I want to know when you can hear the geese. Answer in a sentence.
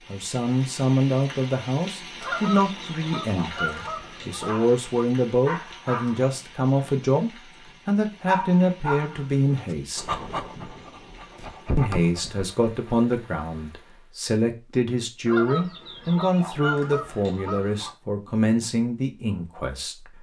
You can hear the geese from 2.2 to 4.6 s and from 15.2 to 17.9 s.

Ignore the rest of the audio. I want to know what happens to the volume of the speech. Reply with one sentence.
The loudness of the speech stays about the same.